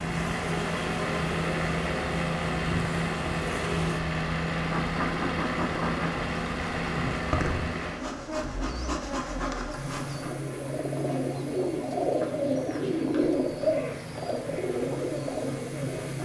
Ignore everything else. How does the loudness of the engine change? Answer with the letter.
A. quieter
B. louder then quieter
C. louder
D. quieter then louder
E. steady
A.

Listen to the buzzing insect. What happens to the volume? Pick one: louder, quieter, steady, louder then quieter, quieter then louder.
quieter.